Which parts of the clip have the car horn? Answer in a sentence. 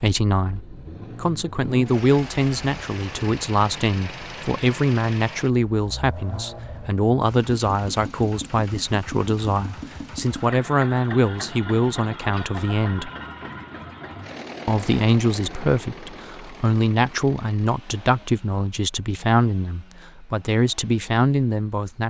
The car horn can't be heard in this clip.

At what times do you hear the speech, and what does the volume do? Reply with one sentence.
You can hear the speech from 0.0 to 13.1 s, at a steady volume; and from 14.7 to 22.0 s, at a steady volume.